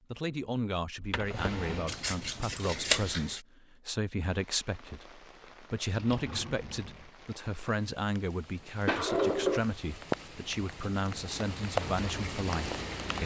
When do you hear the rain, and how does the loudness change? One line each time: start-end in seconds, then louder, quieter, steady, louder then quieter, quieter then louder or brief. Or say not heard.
4.2-13.2 louder.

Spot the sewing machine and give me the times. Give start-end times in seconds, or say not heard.
not heard.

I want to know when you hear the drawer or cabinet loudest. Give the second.
9 s.